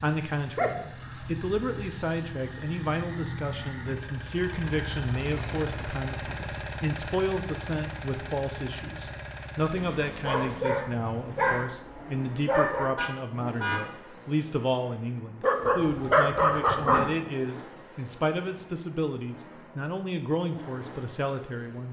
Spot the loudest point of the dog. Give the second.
16 s.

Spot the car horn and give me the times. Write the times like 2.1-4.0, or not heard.
12.9-13.9.